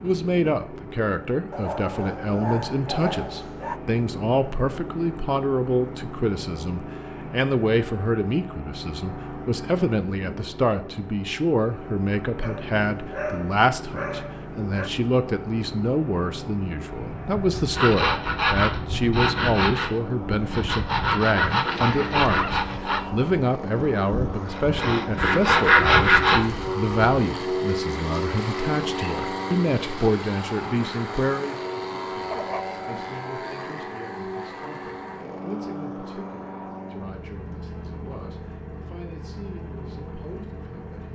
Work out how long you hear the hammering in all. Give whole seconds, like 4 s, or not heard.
not heard.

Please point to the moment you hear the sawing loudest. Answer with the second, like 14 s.
26 s.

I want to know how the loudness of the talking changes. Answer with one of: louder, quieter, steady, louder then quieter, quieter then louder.
quieter.